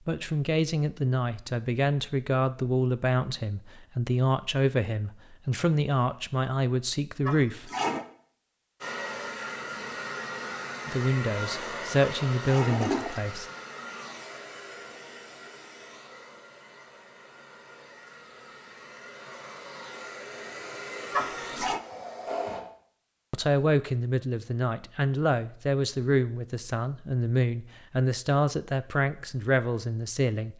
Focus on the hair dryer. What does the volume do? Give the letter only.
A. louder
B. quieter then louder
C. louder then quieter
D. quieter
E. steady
B.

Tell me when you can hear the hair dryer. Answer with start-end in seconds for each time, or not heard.
8.8-22.6.